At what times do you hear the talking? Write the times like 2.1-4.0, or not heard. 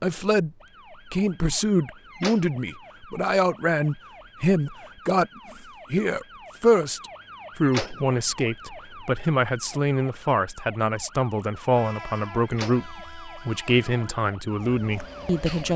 0.0-0.5, 1.1-5.3, 5.9-15.7.